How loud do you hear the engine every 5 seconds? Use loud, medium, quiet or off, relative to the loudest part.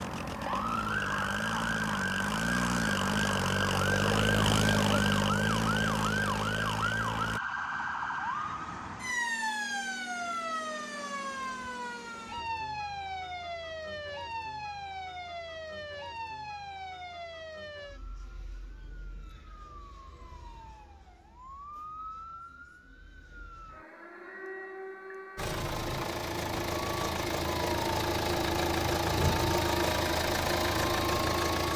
loud, loud, off, off, off, loud, loud.